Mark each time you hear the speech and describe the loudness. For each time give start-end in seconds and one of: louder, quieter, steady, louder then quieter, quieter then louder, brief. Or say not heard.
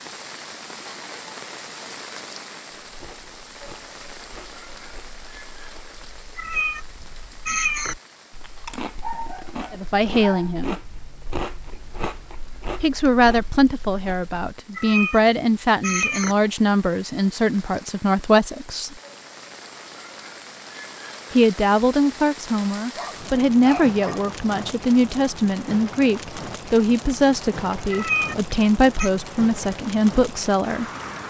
9.7-10.8 brief
12.8-18.9 steady
21.3-30.9 steady.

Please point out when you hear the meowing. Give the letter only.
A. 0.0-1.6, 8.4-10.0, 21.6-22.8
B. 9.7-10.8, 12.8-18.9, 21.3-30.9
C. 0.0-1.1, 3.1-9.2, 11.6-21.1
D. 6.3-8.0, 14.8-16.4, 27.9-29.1
D.